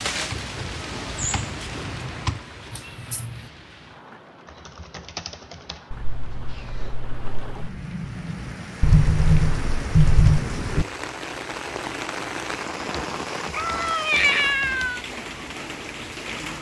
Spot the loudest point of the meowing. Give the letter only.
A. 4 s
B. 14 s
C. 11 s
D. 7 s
B.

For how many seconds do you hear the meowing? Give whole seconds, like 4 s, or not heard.
4 s.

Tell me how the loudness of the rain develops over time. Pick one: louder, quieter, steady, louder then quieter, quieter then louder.
quieter then louder.